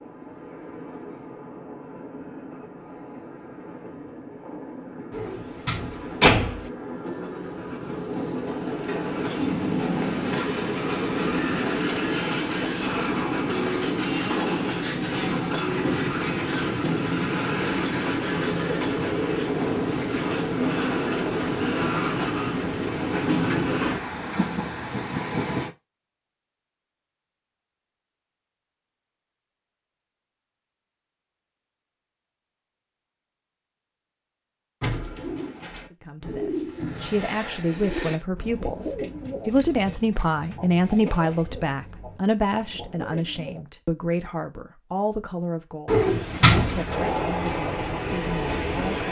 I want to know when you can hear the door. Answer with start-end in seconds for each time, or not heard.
5.1-6.7, 45.9-47.0.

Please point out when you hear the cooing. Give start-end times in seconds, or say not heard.
34.8-43.6.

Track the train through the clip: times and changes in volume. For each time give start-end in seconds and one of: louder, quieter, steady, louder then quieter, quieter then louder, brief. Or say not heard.
0.0-25.8 louder
46.9-49.0 brief.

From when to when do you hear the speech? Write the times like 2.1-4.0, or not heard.
35.9-49.0.